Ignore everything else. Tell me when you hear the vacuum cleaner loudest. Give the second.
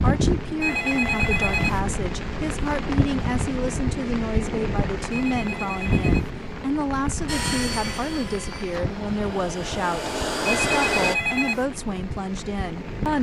11 s.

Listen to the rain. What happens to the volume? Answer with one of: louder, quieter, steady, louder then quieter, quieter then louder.
quieter.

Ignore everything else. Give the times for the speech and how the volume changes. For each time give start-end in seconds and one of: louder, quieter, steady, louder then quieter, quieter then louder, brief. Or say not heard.
0.0-13.1 steady.